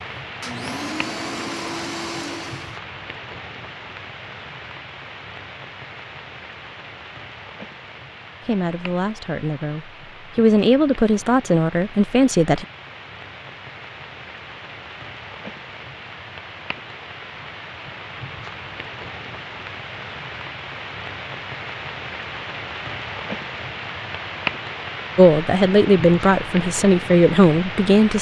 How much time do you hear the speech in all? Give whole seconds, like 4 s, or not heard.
7 s.